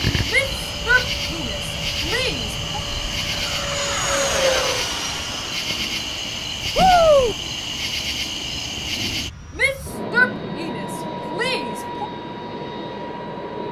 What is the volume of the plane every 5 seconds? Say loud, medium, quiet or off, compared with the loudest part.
loud, medium, loud.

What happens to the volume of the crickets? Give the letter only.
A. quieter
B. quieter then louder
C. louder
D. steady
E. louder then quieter
D.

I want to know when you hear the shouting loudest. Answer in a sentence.
The loudest moment of the shouting is at 7 seconds.